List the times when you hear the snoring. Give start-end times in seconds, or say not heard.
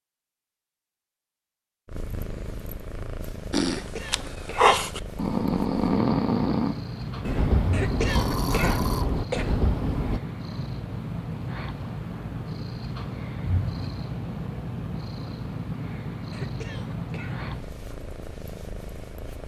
3.5-10.2.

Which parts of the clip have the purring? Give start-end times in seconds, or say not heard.
1.9-19.4.